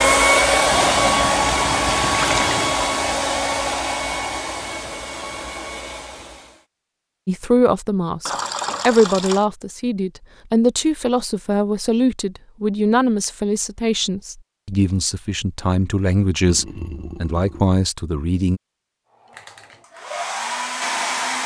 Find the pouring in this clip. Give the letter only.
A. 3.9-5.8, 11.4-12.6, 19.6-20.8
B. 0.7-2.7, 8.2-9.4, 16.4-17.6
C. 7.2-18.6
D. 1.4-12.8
B.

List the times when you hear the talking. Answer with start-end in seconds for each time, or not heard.
7.2-18.6.